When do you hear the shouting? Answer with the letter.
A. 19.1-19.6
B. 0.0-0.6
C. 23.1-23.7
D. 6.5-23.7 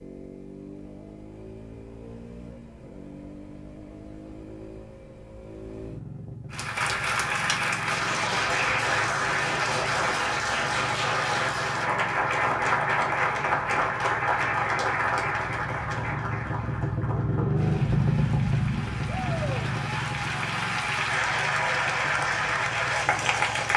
A.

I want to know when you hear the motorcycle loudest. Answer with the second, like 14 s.
18 s.